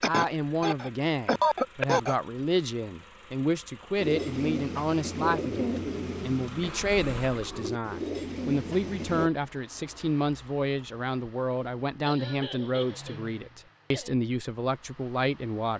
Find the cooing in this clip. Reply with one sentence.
You can hear the cooing from 4.0 to 9.3 s.